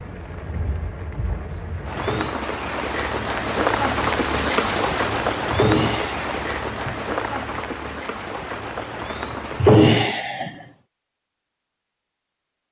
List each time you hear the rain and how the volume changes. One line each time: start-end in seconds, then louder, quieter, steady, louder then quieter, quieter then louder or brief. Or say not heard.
0.0-9.8 louder then quieter.